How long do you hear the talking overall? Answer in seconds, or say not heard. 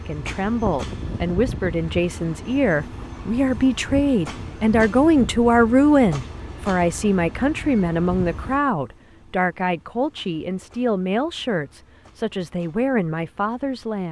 14 s.